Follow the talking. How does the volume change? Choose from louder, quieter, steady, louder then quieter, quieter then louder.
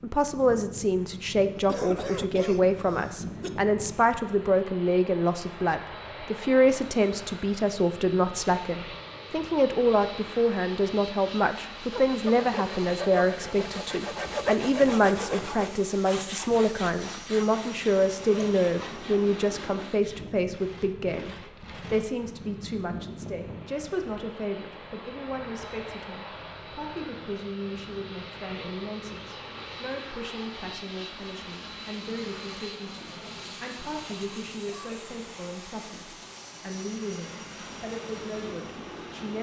quieter.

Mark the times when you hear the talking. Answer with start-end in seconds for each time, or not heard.
0.0-39.3.